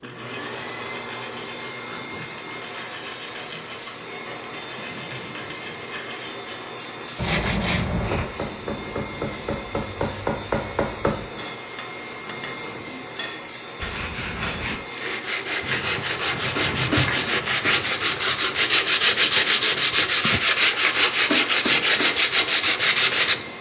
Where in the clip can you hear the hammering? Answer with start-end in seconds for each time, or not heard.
7.9-18.8.